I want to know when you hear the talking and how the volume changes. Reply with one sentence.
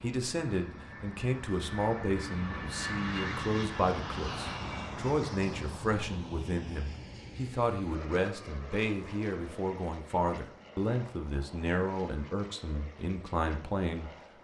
The talking can be heard from 0.0 to 14.4 s, at a steady volume.